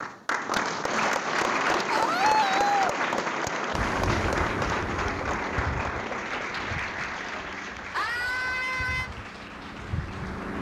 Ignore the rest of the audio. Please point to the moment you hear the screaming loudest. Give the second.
2 s.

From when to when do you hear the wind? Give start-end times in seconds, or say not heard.
3.7-10.5.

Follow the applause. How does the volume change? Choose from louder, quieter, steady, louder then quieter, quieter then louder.
quieter.